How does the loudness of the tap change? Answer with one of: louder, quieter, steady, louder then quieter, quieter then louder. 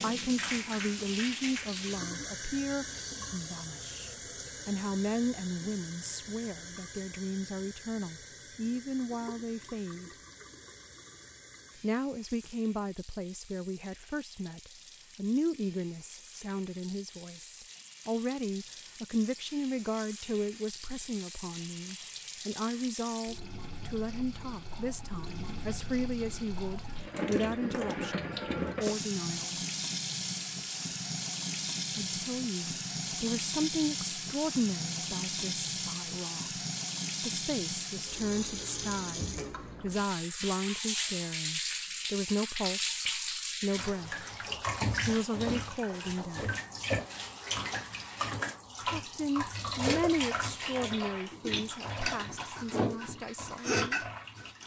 quieter then louder.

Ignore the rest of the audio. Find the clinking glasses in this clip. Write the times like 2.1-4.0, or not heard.
not heard.